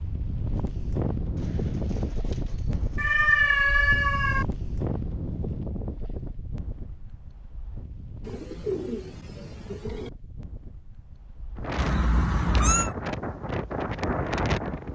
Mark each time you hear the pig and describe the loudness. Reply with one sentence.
You can't hear the pig here.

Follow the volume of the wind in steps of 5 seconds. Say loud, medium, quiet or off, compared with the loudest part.
loud, medium, loud.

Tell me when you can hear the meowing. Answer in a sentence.
The meowing can be heard from 3.0 to 4.5 s and from 11.8 to 12.9 s.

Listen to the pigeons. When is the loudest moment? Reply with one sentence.
The loudest moment of the pigeons is at 9 seconds.